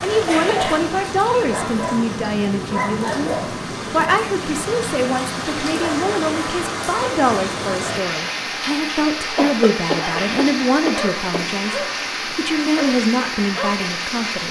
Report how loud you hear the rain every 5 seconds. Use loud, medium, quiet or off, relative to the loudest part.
medium, loud, loud.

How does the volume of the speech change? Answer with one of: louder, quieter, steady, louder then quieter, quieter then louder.
steady.